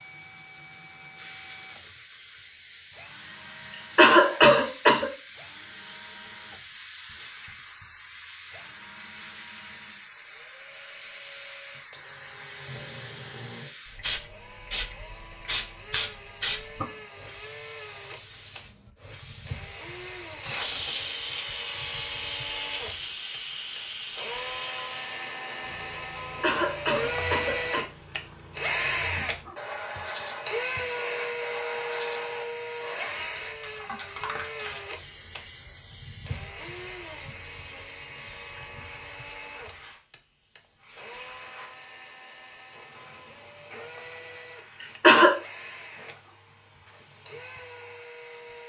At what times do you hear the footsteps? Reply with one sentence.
The footsteps can't be heard in this clip.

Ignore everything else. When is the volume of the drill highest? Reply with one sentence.
The loudest moment of the drill is at 29 seconds.